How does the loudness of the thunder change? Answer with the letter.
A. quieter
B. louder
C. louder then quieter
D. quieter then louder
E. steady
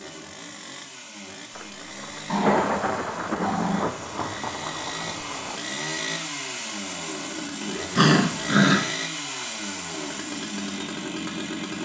A.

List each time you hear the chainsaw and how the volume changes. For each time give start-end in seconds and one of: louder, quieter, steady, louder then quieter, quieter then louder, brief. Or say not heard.
0.0-11.8 louder.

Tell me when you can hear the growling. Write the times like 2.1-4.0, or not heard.
2.2-3.9, 8.0-8.8.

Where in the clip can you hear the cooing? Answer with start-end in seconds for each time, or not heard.
not heard.